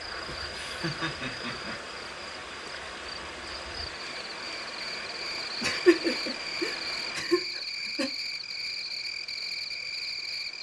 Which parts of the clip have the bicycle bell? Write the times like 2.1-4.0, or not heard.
not heard.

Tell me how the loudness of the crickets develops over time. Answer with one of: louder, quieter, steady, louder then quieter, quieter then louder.
louder.